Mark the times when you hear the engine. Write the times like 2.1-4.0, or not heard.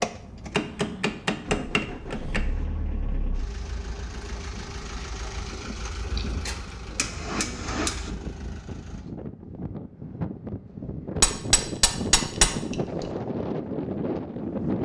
0.0-9.1.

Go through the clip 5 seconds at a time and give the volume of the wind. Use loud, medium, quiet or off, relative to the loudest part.
quiet, medium, loud.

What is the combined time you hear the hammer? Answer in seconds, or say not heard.
6 s.